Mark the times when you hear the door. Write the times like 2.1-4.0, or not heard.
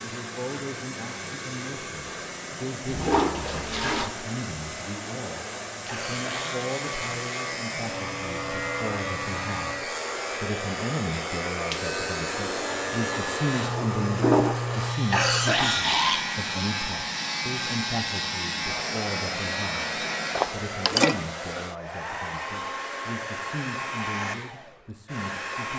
not heard.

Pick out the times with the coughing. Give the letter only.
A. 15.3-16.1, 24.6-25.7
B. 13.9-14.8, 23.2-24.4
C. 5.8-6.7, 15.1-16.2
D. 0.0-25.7
C.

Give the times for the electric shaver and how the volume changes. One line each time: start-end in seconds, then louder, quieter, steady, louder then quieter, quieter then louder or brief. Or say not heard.
5.8-20.6 steady.